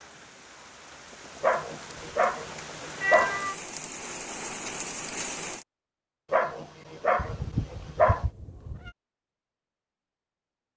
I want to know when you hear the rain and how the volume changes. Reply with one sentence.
The rain can be heard from 0.0 to 5.7 s, getting louder.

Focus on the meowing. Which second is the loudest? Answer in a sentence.
The loudest moment of the meowing is at 3 seconds.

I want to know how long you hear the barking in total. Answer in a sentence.
You can hear the barking for 4 seconds altogether.